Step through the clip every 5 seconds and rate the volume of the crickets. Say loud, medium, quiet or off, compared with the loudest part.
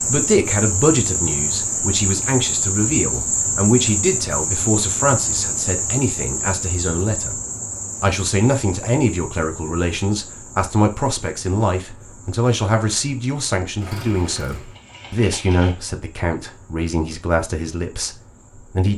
loud, medium, quiet, quiet.